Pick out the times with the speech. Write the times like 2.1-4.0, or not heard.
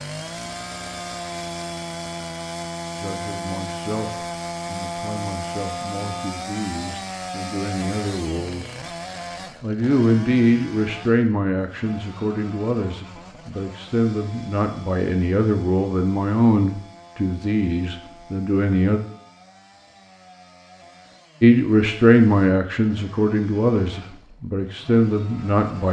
3.0-8.8, 9.6-19.0, 21.4-25.8.